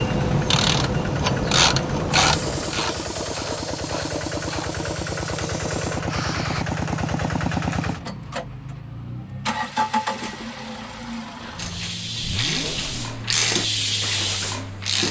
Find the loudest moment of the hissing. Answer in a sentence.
The volume of the hissing peaks at 14 seconds.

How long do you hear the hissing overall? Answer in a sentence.
The hissing can be heard for 8 seconds in total.